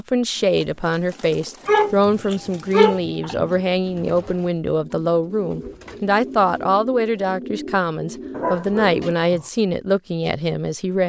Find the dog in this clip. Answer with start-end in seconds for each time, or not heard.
1.6-3.5, 8.3-9.5.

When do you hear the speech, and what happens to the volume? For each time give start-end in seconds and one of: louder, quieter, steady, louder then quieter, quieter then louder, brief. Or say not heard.
0.0-11.0 steady.